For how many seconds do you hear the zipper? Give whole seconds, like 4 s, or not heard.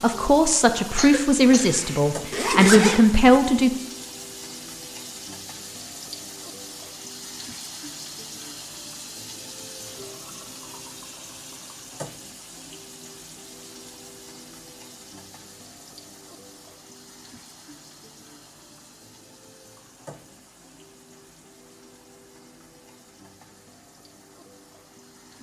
2 s.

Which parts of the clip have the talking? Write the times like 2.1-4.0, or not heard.
0.0-3.7.